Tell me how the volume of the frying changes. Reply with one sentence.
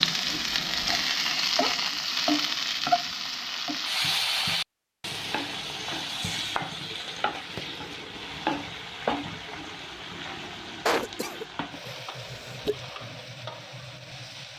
The loudness of the frying goes down.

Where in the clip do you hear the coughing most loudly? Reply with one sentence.
The loudest moment of the coughing is at 11 seconds.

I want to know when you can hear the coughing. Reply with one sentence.
The coughing can be heard from 10.8 to 12.8 s.